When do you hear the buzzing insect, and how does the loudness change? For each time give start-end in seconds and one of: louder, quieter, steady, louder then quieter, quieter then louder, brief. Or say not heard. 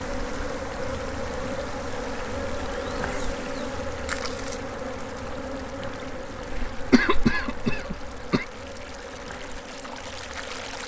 0.0-10.8 quieter.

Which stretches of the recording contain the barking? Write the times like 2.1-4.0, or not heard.
not heard.